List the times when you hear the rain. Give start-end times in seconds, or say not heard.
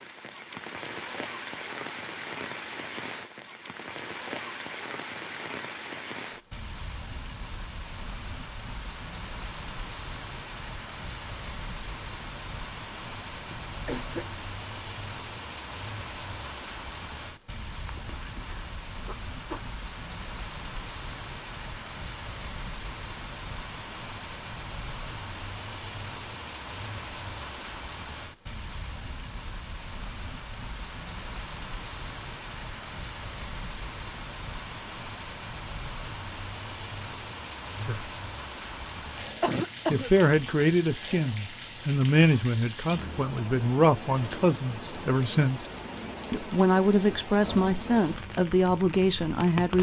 0.0-49.7.